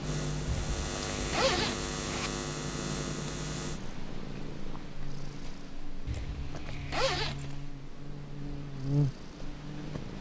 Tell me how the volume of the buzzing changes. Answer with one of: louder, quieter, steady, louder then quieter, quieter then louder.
quieter then louder.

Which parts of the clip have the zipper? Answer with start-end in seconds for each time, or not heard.
0.5-2.3, 6.0-7.7.